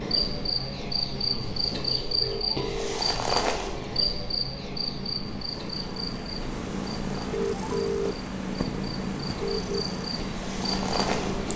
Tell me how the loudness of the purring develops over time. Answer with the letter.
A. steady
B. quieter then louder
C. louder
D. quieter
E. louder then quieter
C.